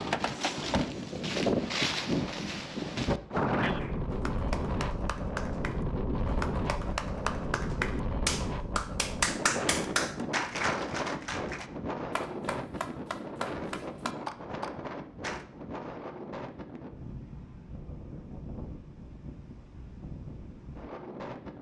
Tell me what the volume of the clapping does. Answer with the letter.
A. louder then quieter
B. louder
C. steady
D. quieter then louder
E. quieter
A.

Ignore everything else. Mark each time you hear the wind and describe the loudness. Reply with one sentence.
The wind can be heard from 0.0 to 21.5 s, getting quieter.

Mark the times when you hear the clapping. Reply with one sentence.
You can hear the clapping from 3.8 to 15.4 s.